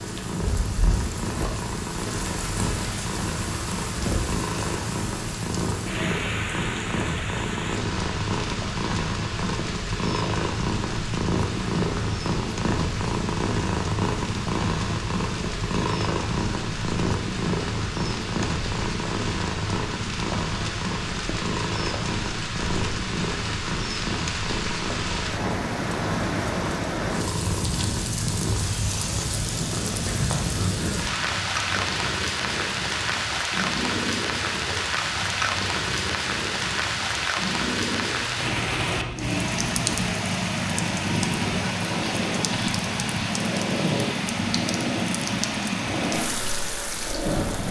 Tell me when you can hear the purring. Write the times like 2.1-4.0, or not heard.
0.0-47.6.